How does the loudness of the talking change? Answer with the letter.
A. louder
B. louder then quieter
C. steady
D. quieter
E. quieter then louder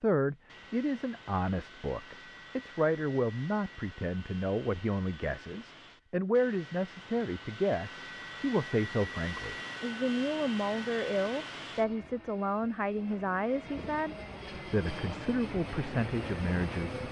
C.